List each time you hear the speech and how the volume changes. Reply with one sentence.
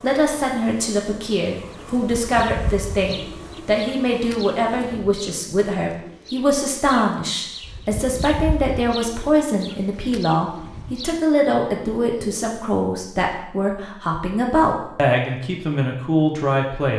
The speech can be heard from 0.0 to 16.9 s, at a steady volume.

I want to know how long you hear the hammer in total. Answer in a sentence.
You can't hear the hammer here.